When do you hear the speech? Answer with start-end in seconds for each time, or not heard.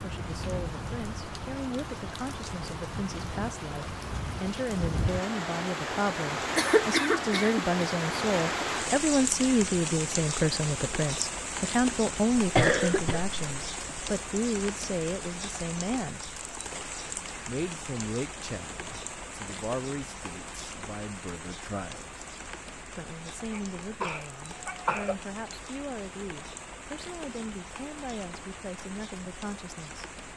0.0-16.2, 17.4-22.2, 22.9-30.1.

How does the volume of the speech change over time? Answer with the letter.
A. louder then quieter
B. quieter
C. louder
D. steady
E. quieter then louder
A.